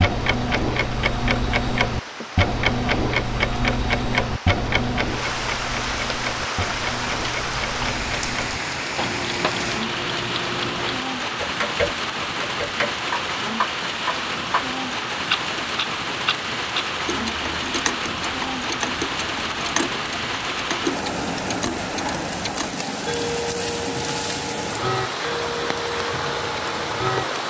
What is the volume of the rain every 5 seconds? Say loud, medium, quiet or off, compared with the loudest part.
medium, loud, loud, loud, loud, loud.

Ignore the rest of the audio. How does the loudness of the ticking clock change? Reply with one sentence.
The volume of the ticking clock goes down.